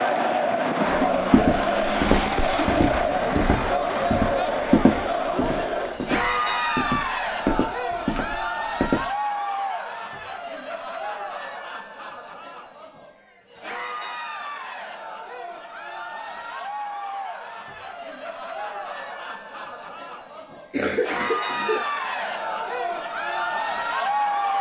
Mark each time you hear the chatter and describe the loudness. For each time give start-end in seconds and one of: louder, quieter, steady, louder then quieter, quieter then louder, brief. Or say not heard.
0.0-24.5 quieter then louder.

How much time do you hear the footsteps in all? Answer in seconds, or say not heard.
8 s.